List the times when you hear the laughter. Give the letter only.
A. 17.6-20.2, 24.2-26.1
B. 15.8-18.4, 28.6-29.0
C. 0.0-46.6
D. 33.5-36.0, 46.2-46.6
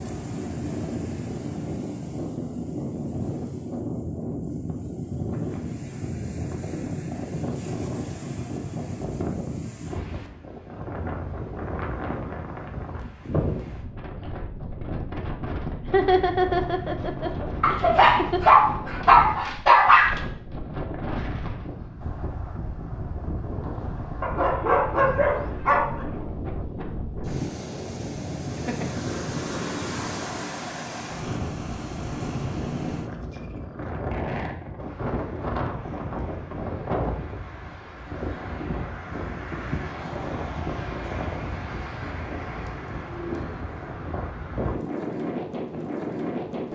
B.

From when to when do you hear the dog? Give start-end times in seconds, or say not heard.
17.6-20.2, 24.2-26.1.